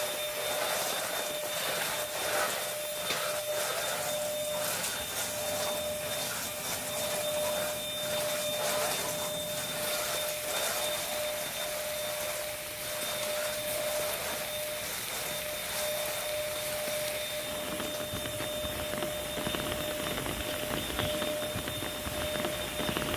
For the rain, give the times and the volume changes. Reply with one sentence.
The rain can be heard from 0.0 to 23.1 s, getting louder.